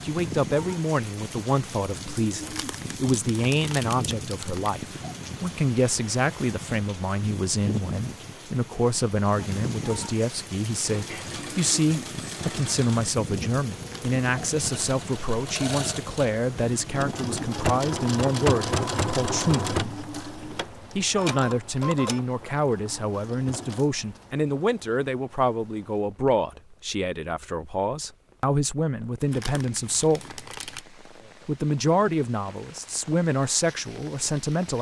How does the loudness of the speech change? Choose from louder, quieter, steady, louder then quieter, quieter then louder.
steady.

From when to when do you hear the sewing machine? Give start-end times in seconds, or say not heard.
10.8-23.9.